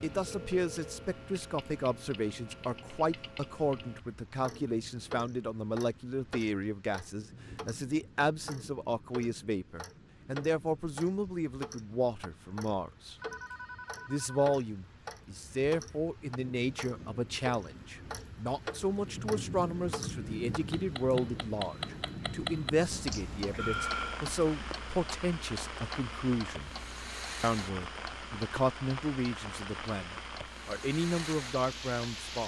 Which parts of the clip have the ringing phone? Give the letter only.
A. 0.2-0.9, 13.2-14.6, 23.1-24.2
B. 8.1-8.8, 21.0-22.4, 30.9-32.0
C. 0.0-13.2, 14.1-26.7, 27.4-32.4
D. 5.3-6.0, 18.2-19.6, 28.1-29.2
A.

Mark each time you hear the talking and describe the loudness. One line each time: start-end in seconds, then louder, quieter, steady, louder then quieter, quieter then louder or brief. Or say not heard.
0.0-13.2 steady
14.1-26.7 steady
27.4-32.4 quieter then louder.